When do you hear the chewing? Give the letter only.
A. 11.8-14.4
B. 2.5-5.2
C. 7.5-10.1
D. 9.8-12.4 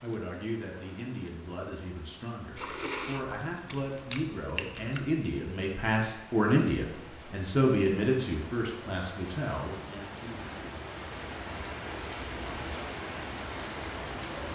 B.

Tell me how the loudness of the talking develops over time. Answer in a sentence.
The loudness of the talking goes up, then down.